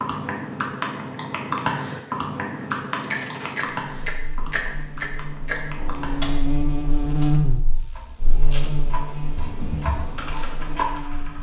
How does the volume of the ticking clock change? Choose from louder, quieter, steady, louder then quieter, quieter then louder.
quieter then louder.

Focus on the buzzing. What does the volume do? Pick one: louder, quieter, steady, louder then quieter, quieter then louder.
louder then quieter.